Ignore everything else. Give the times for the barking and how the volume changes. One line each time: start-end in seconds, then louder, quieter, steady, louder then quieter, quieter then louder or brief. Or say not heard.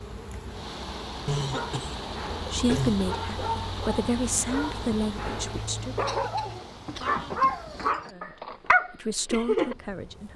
1.6-9.8 louder.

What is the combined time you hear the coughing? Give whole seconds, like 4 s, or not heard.
4 s.